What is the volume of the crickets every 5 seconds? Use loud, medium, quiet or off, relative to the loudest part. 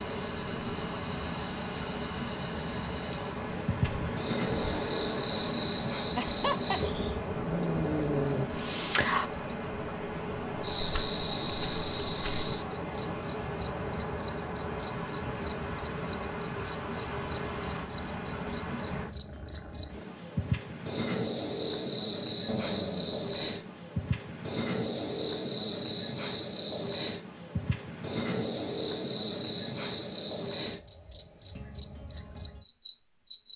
medium, loud, loud, loud, loud, loud, loud.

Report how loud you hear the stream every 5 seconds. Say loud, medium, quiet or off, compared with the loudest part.
loud, loud, loud, loud, off, off, off.